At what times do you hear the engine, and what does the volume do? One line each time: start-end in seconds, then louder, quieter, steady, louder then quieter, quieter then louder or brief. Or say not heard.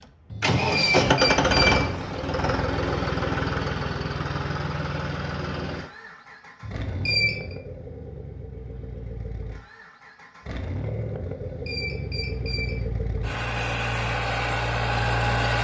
0.4-15.5 quieter then louder.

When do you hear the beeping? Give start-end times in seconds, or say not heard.
0.3-1.9, 6.6-7.5, 11.4-12.8.